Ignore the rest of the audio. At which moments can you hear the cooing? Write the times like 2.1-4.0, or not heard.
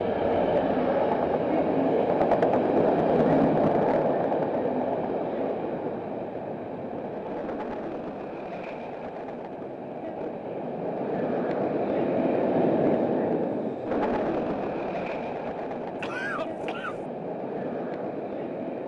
not heard.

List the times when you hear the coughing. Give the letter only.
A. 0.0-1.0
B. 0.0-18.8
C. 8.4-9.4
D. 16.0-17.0
D.